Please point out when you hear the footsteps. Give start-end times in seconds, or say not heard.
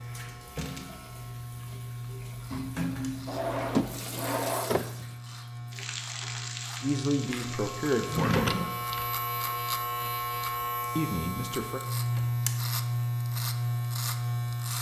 not heard.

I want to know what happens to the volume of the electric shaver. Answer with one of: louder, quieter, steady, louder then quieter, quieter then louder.
louder.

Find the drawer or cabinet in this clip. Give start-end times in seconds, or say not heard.
3.2-4.9, 8.1-9.1.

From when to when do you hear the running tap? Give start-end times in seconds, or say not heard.
0.0-8.3.